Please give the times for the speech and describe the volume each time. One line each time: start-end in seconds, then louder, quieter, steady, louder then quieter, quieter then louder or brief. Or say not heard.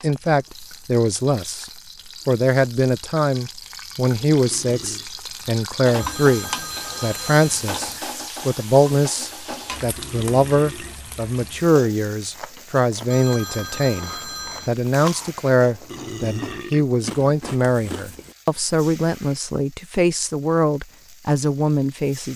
0.0-22.3 steady.